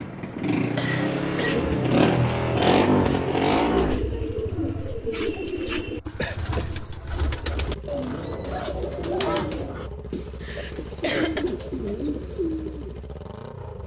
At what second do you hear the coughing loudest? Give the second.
11 s.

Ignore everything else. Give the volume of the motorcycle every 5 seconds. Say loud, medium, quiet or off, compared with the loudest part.
loud, quiet, quiet.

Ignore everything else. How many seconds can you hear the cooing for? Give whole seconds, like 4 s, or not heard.
12 s.